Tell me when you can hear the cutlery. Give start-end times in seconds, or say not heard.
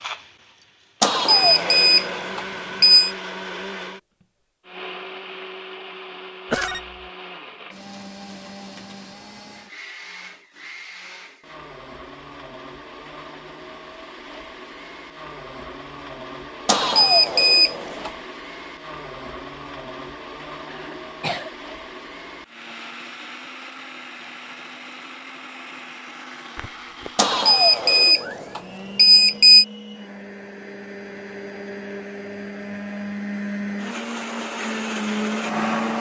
not heard.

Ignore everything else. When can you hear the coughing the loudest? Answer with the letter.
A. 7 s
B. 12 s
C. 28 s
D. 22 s
A.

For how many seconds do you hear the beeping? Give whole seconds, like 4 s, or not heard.
6 s.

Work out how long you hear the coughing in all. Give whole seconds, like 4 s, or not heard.
2 s.